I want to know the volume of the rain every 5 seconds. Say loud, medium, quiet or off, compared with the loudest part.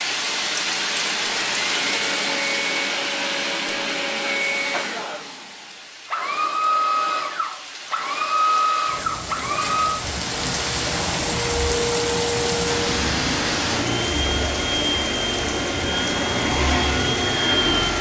loud, medium, loud, loud.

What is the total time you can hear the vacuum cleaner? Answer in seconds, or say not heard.
18 s.